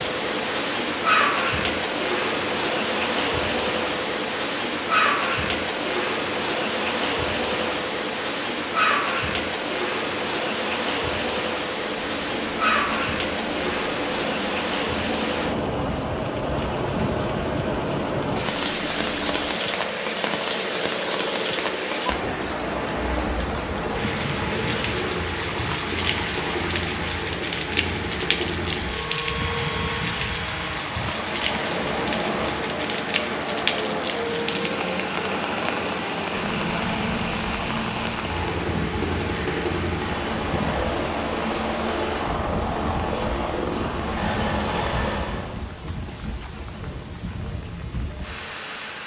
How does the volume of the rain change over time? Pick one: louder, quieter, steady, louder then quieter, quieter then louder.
quieter.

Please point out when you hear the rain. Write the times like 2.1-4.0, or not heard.
0.0-49.0.